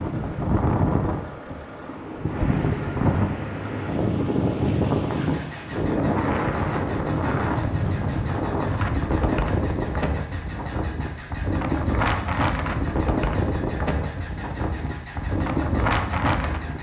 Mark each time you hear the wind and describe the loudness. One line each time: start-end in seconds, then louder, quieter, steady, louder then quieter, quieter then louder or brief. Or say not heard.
0.0-16.7 steady.